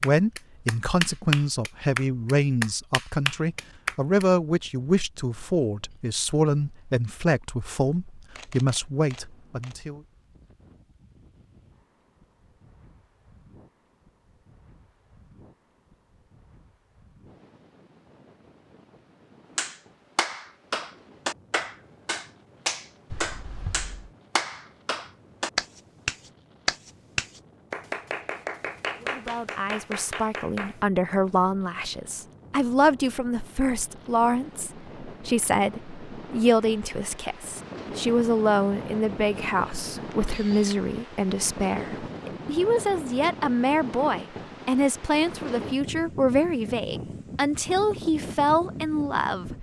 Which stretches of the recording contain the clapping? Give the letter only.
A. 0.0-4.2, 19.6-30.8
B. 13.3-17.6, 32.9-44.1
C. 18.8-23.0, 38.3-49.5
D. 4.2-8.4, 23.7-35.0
A.